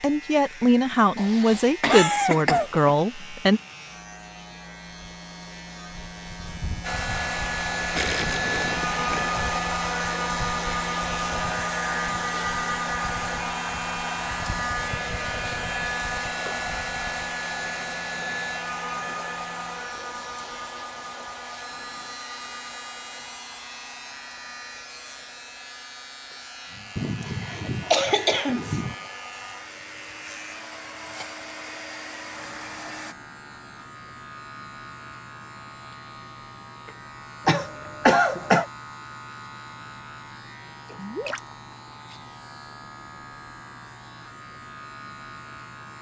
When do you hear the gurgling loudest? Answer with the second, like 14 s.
8 s.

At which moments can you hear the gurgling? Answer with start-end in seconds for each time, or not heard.
8.0-9.2, 40.9-41.5.